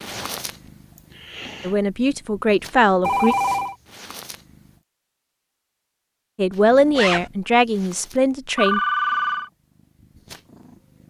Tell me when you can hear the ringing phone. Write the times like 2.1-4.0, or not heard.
3.0-3.8, 8.6-9.5.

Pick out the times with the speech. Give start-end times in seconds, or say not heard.
1.6-3.4, 6.3-8.8.